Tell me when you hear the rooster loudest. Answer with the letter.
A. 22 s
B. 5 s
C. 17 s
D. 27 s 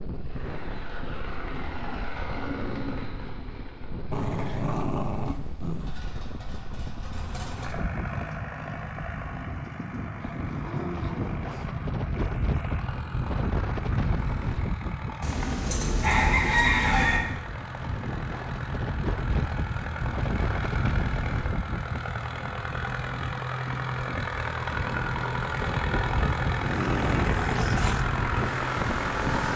C.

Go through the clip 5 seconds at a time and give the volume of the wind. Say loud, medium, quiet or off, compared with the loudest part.
medium, medium, loud, loud, loud, loud.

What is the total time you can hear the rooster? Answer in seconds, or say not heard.
2 s.